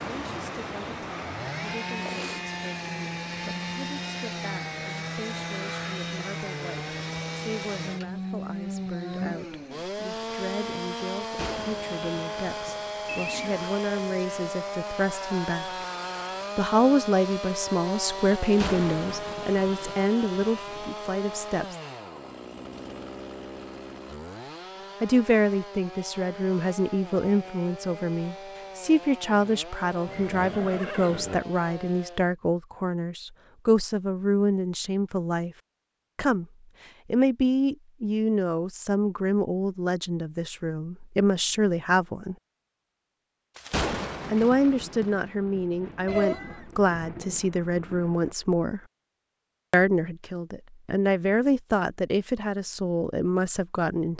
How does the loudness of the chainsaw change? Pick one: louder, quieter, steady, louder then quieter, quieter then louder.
quieter.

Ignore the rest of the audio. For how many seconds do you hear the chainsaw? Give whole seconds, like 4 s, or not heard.
32 s.